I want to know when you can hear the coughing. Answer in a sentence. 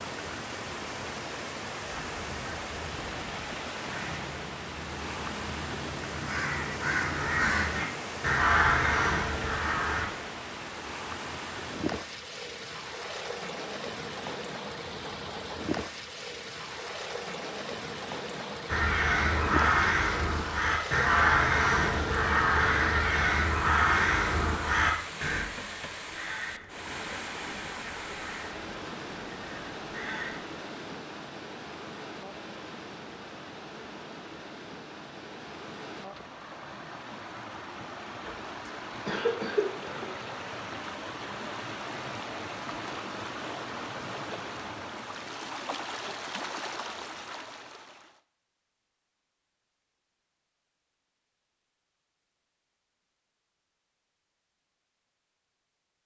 The coughing can be heard from 38.2 to 40.1 s.